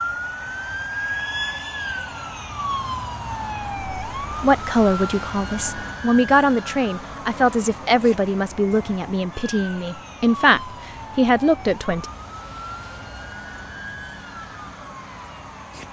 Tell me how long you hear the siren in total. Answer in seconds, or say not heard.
16 s.